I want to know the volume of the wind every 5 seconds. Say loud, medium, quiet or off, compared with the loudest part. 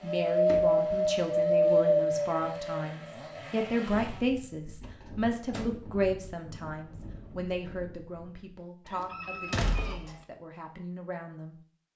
loud, quiet, off.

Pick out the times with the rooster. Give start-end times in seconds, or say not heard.
8.8-10.1.